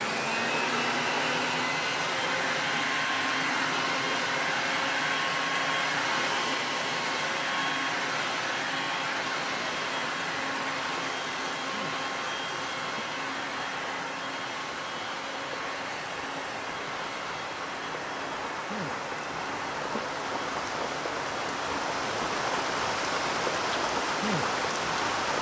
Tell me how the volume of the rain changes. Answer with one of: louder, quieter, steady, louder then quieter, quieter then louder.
louder.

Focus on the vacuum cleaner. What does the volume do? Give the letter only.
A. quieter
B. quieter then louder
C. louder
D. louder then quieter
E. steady
A.